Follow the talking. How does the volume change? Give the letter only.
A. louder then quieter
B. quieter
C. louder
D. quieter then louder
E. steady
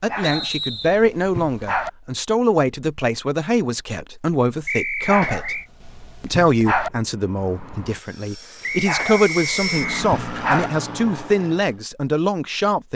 E.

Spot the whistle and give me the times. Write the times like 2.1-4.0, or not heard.
0.2-1.0, 4.7-5.7, 8.6-9.9.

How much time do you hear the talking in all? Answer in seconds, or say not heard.
12 s.